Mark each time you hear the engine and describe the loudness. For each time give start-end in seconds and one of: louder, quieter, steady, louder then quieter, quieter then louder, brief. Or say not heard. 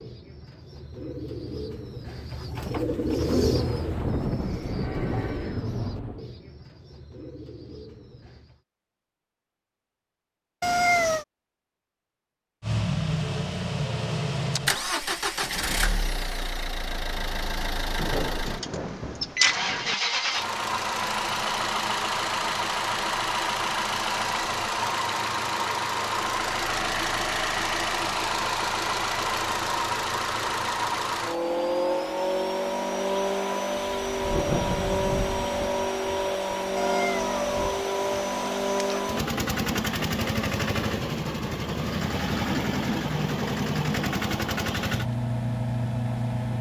12.6-46.5 steady.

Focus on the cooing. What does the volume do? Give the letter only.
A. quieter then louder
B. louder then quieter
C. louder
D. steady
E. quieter
B.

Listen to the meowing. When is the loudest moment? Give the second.
11 s.